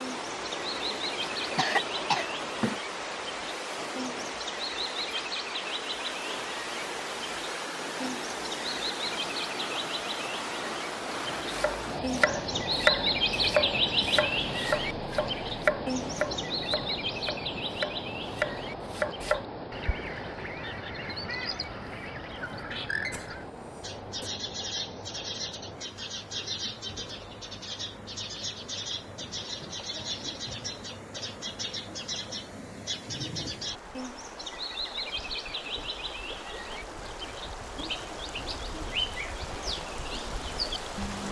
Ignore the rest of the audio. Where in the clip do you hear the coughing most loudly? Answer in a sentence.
The loudest moment of the coughing is at 2 seconds.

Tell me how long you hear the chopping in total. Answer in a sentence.
The chopping can be heard for 8 seconds in total.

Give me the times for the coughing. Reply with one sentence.
The coughing can be heard from 1.6 to 2.8 s and from 23.1 to 24.3 s.